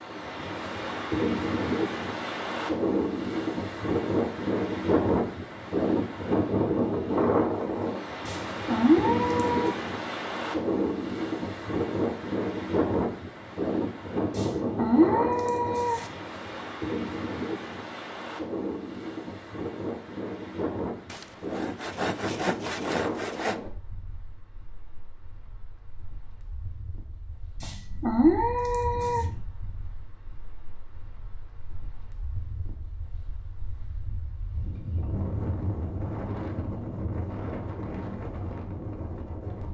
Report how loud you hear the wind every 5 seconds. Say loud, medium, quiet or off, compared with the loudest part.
loud, loud, loud, medium, medium, quiet, quiet, medium.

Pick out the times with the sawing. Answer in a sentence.
The sawing can be heard from 21.1 to 23.6 s.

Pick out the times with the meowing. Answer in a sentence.
The meowing can be heard from 8.2 to 9.8 s, from 14.3 to 16.1 s and from 27.6 to 29.2 s.